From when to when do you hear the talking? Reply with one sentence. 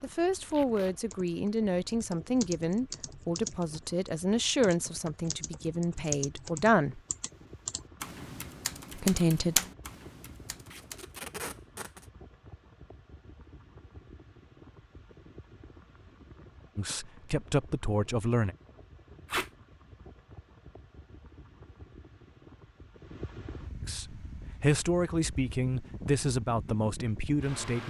The talking can be heard from 0.0 to 7.0 s, from 8.9 to 9.6 s, from 16.8 to 18.6 s and from 23.9 to 27.8 s.